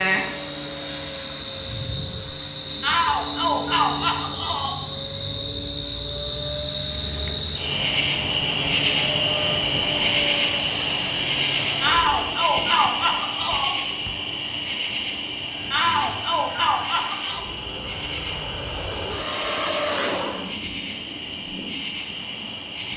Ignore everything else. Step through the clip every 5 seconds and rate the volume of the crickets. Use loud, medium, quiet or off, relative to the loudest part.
medium, loud, loud, medium, medium.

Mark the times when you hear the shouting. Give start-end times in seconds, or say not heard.
2.8-4.8, 11.8-13.8, 15.7-17.4.